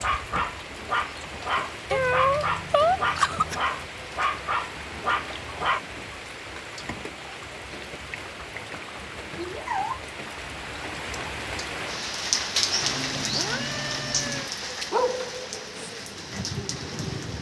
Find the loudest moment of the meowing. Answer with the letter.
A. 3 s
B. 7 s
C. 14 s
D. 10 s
A.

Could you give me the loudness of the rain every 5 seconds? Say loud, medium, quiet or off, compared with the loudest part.
medium, medium, loud, medium.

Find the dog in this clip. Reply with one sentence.
You can hear the dog from 0.0 to 5.8 s and from 14.6 to 17.3 s.